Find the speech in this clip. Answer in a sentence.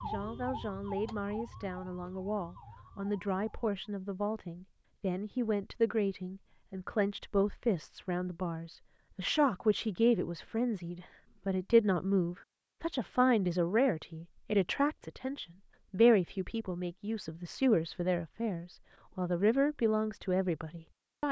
The speech can be heard from 0.0 to 21.2 s.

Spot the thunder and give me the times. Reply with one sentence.
The thunder can't be heard in this clip.